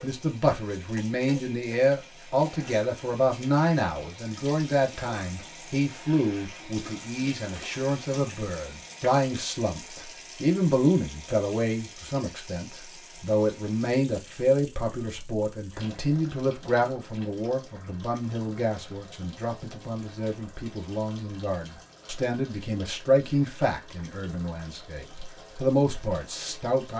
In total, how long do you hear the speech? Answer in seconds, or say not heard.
27 s.